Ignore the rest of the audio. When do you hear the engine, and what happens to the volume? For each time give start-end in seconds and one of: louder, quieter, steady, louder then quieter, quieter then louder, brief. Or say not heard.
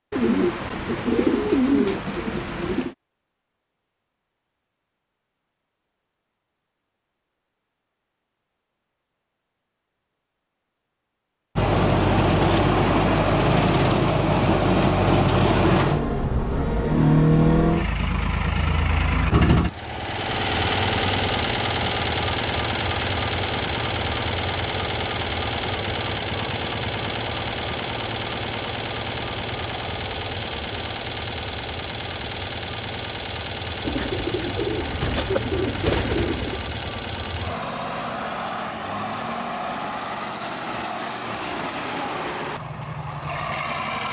11.6-44.0 quieter.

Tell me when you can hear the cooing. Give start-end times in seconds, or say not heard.
0.1-3.0, 33.8-36.6.